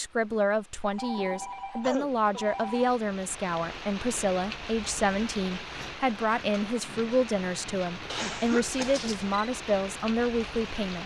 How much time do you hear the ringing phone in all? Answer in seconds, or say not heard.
3 s.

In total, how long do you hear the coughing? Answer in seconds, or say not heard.
2 s.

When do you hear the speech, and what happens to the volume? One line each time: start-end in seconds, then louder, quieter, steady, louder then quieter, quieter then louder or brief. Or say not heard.
0.0-11.0 steady.